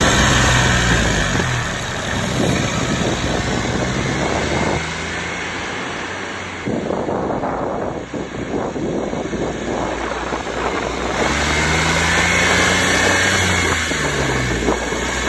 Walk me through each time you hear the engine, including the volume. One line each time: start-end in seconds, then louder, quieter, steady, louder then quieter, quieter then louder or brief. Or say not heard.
0.0-15.2 quieter then louder.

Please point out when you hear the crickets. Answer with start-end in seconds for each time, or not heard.
not heard.